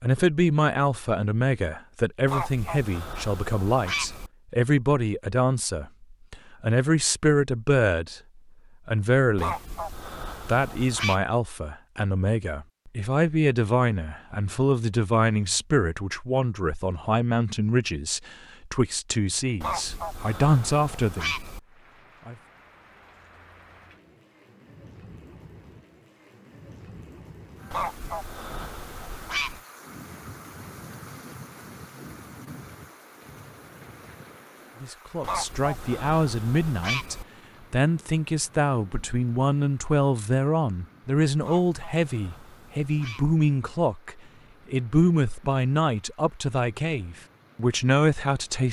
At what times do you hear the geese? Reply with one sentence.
You can hear the geese from 2.2 to 4.3 s, from 9.3 to 11.2 s, from 19.6 to 21.6 s, from 27.7 to 29.6 s, from 35.2 to 37.2 s and from 41.4 to 43.4 s.